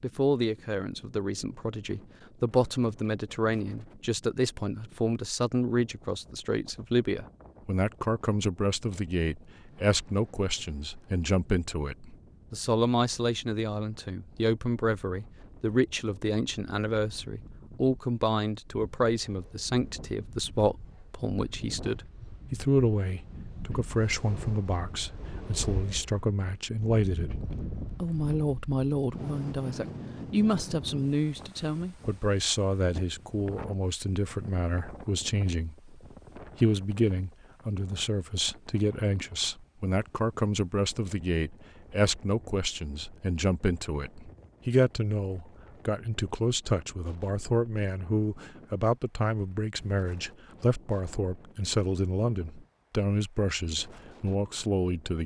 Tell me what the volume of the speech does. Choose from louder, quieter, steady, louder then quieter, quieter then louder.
steady.